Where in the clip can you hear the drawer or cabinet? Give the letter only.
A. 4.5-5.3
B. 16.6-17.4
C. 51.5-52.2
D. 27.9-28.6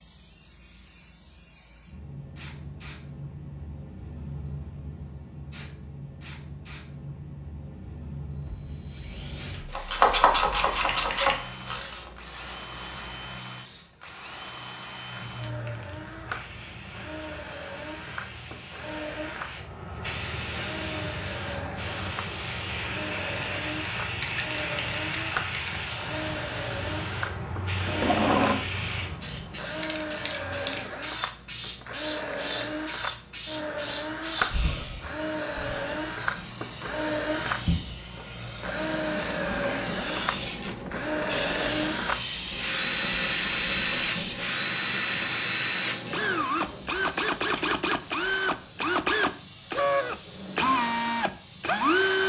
D.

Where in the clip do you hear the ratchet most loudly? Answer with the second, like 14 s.
10 s.